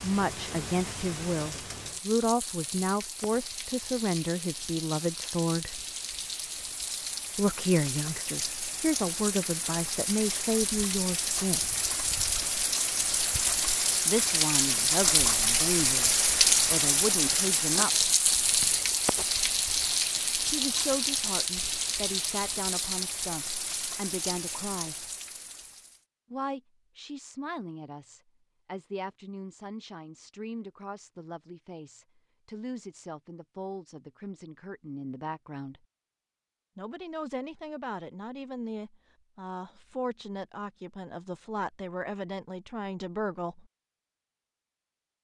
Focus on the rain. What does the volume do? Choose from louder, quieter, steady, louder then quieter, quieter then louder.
louder then quieter.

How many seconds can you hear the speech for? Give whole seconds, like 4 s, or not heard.
35 s.